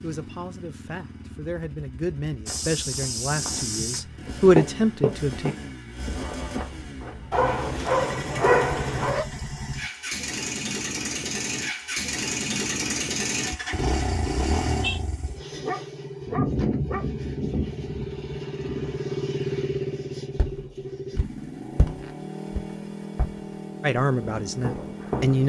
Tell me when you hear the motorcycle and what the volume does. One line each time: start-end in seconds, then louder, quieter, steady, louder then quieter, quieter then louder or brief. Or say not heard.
0.0-25.4 louder then quieter.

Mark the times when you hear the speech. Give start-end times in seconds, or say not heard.
0.0-5.5, 23.8-25.4.